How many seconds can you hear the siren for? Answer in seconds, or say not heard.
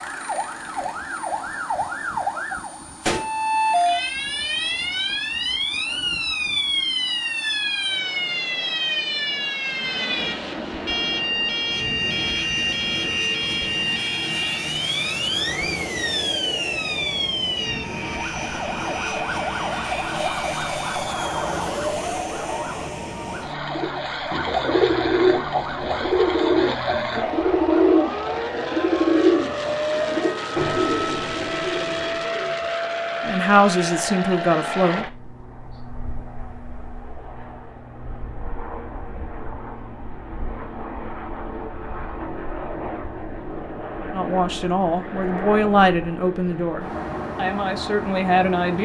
35 s.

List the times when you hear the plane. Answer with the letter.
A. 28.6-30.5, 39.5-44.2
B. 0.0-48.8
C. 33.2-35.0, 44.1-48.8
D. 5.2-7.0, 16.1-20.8
B.